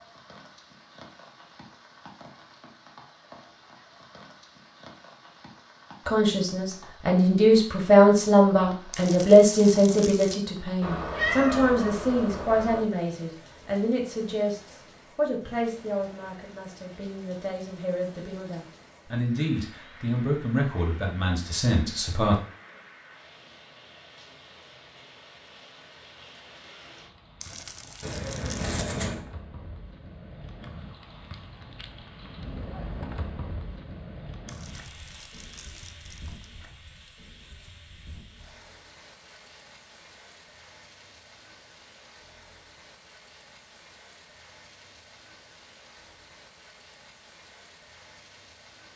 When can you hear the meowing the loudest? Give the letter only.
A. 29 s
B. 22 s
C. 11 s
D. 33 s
C.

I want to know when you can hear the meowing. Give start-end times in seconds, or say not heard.
10.8-12.8, 28.0-29.2.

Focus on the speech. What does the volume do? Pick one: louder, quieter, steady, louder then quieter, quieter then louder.
quieter then louder.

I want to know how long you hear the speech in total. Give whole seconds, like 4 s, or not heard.
16 s.